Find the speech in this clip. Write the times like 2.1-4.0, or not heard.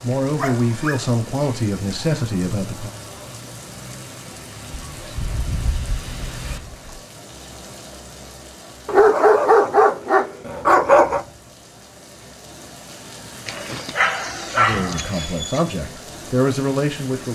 0.0-2.9, 14.6-17.3.